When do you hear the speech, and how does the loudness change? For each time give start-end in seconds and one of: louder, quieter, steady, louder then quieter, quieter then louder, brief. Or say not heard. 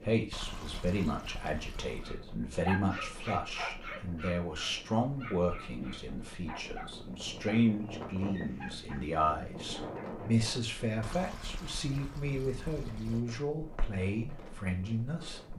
0.0-15.5 steady.